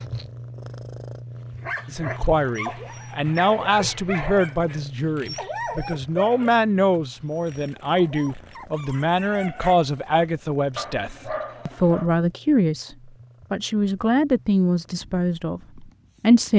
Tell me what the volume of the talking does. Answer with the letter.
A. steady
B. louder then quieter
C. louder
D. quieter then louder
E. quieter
A.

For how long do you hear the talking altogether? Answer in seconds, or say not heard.
15 s.